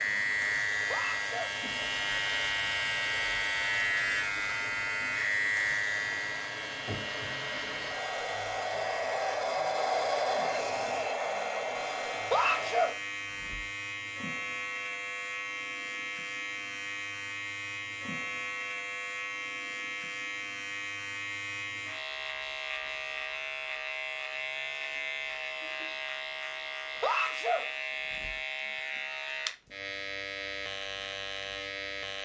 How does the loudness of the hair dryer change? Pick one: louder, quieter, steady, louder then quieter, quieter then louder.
louder.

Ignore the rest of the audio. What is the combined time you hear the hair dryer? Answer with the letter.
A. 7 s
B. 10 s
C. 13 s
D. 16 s
C.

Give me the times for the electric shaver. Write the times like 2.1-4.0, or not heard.
0.0-32.1.